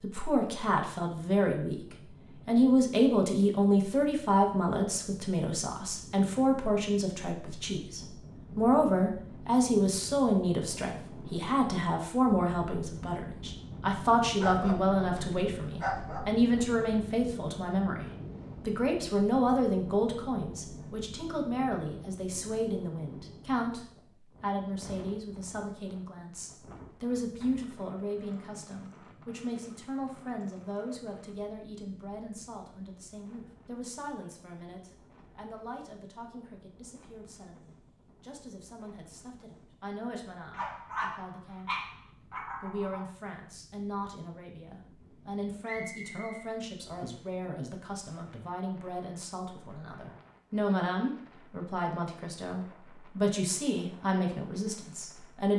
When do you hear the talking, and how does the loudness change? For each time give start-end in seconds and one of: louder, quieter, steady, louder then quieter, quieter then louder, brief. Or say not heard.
0.0-55.5 quieter then louder.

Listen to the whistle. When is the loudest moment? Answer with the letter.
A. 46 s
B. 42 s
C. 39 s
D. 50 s
A.